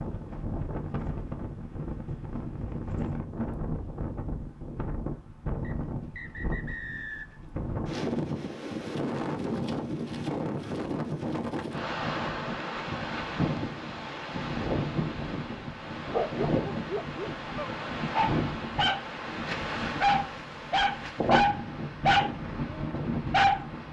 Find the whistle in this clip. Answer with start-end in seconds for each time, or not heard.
5.6-7.5.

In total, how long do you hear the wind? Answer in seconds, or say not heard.
24 s.